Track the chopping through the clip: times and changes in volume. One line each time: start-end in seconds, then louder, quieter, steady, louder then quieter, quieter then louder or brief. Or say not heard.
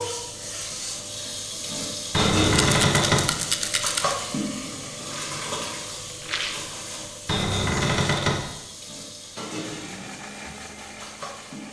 not heard.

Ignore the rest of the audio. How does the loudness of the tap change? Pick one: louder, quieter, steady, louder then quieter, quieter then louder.
quieter.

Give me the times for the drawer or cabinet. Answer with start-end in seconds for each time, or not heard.
2.1-3.3, 7.2-8.4.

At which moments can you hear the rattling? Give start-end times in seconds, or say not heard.
2.6-4.2, 6.2-6.7.